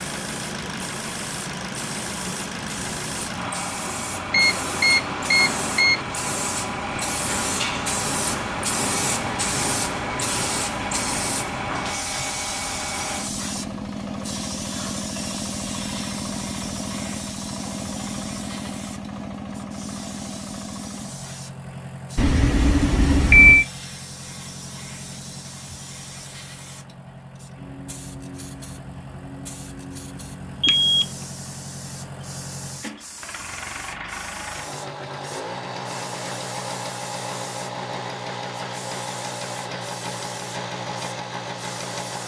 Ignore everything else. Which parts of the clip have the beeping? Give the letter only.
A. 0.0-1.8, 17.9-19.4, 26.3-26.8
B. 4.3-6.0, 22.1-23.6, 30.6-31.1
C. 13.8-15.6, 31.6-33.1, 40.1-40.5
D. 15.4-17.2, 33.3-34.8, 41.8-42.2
B.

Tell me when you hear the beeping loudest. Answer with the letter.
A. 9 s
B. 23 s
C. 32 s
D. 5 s
B.